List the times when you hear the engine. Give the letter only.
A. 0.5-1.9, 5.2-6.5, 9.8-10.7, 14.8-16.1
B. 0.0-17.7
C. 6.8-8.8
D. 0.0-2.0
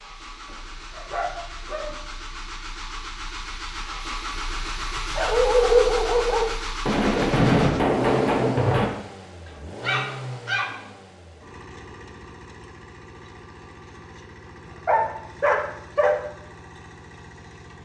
B.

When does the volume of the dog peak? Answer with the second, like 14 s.
6 s.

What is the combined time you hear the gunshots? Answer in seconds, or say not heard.
2 s.